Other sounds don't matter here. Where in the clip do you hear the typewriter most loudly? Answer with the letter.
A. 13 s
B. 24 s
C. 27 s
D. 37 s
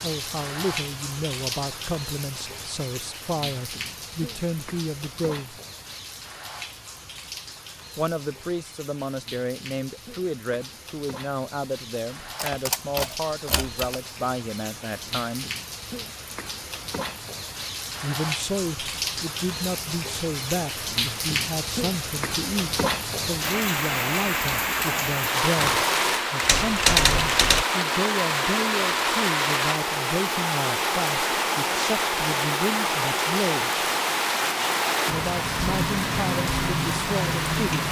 C.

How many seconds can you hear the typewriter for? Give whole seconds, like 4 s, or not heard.
4 s.